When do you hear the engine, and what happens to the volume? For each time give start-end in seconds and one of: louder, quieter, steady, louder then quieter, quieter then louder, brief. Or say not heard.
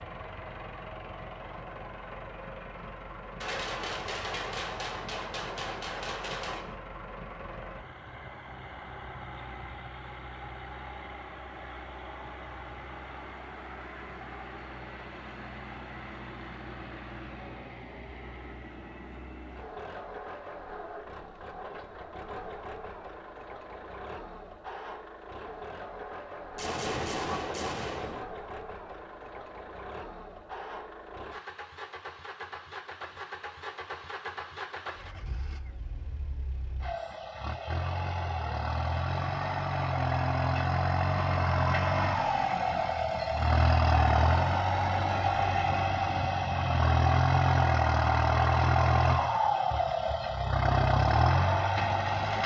0.0-52.4 louder.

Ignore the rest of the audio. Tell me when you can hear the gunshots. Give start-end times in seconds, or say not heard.
3.4-6.8, 26.6-28.2.